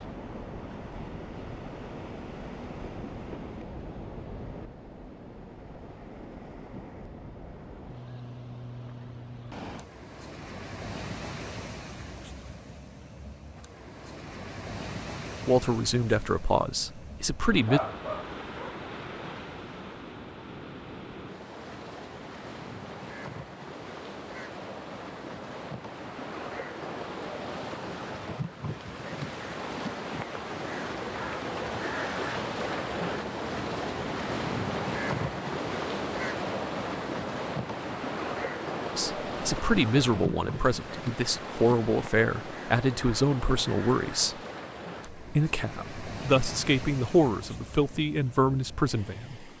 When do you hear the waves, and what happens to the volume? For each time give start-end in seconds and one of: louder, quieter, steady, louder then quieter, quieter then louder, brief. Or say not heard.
0.0-49.5 louder then quieter.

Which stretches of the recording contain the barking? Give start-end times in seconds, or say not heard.
17.6-18.8.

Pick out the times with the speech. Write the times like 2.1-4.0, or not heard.
15.4-17.8, 39.0-44.4, 45.1-49.5.